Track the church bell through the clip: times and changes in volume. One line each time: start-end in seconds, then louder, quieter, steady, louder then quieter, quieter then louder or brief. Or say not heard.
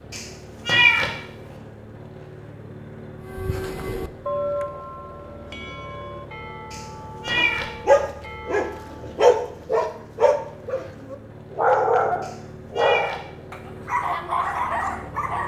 3.2-9.0 quieter.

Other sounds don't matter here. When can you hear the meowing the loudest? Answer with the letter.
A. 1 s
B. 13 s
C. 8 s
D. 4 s
A.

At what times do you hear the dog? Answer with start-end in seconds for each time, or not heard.
7.3-15.4.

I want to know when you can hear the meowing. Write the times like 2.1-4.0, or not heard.
0.1-1.1, 6.7-7.7, 12.2-13.2.